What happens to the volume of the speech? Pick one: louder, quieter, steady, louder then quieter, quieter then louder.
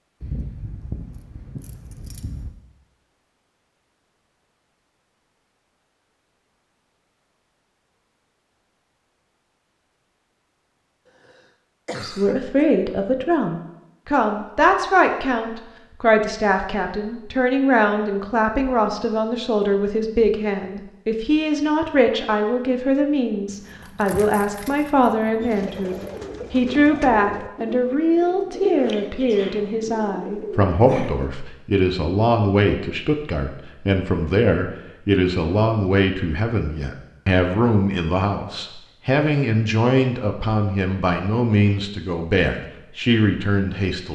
steady.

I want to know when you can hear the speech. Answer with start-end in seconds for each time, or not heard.
12.0-44.0.